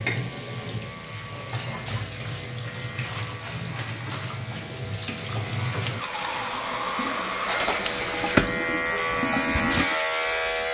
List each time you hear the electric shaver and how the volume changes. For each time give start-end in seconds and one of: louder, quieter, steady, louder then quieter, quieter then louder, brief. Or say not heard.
0.0-10.6 louder.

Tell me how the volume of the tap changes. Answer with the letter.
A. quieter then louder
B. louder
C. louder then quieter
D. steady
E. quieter
B.